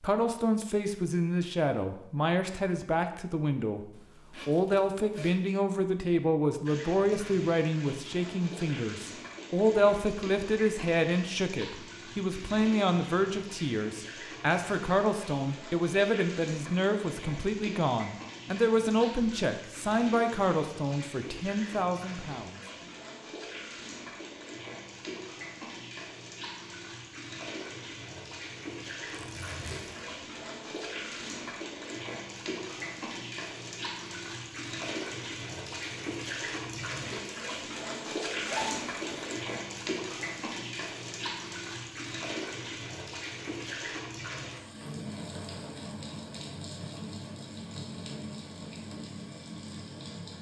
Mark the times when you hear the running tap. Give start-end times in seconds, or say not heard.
6.7-50.3.